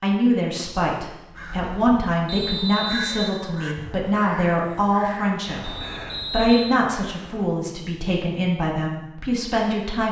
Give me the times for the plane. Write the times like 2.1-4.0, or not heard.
not heard.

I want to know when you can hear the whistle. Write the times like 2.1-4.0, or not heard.
2.2-3.4, 5.6-6.9.